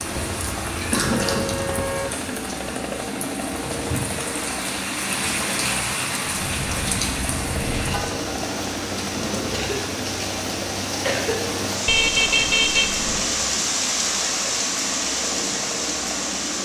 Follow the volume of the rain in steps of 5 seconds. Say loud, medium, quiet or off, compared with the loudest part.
medium, loud, loud, loud.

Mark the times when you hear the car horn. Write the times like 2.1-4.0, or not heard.
0.1-2.0, 6.2-8.2, 11.8-13.2.